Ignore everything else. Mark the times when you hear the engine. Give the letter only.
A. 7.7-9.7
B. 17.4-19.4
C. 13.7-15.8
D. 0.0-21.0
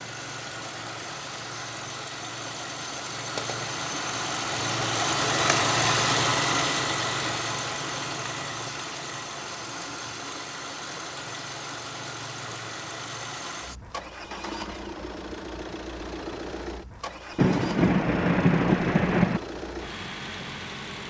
D.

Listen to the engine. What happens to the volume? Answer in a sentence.
The volume of the engine goes up, then down.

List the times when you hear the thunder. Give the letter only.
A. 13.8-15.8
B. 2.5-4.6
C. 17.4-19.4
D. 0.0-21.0
C.